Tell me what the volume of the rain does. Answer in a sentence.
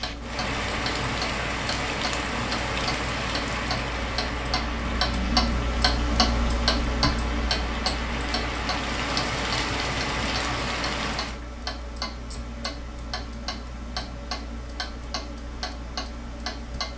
The loudness of the rain goes down, then up.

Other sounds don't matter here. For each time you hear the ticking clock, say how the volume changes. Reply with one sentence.
The ticking clock can be heard from 0.0 to 16.9 s, getting louder then quieter.